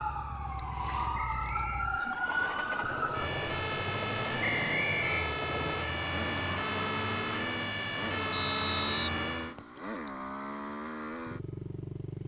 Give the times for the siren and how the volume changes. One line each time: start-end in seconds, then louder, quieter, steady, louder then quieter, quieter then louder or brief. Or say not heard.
0.0-9.6 steady.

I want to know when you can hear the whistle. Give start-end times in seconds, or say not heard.
1.1-1.9, 4.7-5.2, 8.3-9.8.